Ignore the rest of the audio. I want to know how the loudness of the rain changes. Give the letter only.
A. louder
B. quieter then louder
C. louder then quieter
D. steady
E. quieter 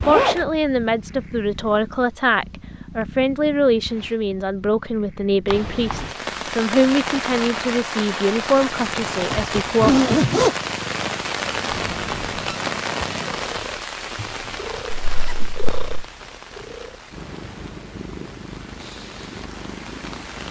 E.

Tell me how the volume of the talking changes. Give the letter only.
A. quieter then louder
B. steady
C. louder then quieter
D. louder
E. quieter
B.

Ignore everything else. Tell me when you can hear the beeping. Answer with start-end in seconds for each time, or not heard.
5.5-6.2, 11.7-12.6.